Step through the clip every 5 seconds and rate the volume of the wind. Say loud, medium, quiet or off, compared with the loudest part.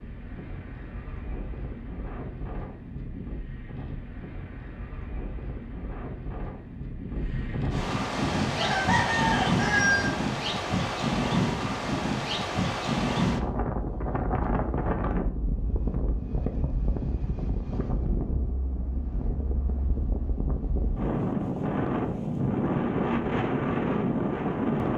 quiet, loud, loud, medium, loud.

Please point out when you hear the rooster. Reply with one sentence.
The rooster can be heard from 8.3 to 10.1 s.